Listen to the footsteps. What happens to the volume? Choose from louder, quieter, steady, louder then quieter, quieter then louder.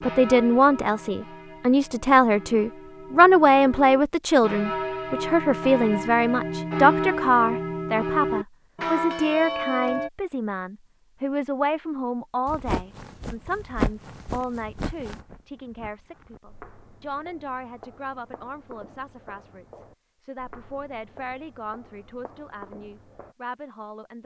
quieter.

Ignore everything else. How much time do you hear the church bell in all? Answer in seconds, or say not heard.
10 s.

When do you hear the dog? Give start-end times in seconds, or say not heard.
not heard.